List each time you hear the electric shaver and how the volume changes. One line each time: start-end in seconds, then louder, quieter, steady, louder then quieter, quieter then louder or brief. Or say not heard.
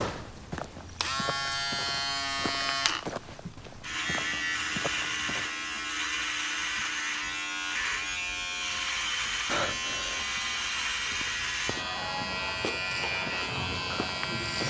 0.0-14.6 steady.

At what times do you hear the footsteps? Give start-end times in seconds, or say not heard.
0.1-5.5, 11.1-14.6.